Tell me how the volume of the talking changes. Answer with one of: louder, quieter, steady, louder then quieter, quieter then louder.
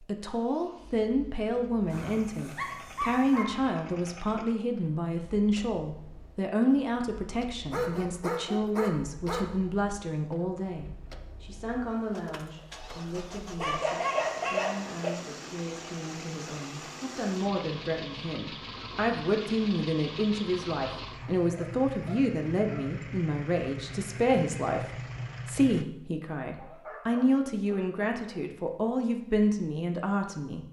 quieter then louder.